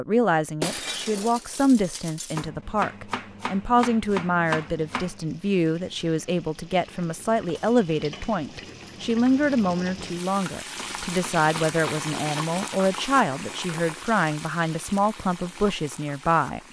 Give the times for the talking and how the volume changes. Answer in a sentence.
You can hear the talking from 0.0 to 16.6 s, at a steady volume.